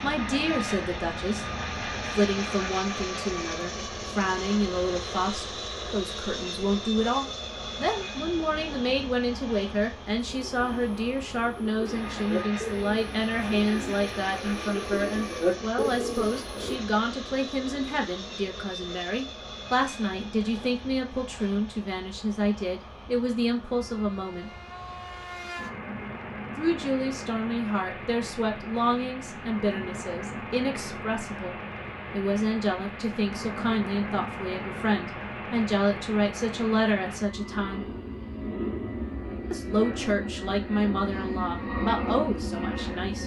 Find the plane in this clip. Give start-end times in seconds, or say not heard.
0.0-43.2.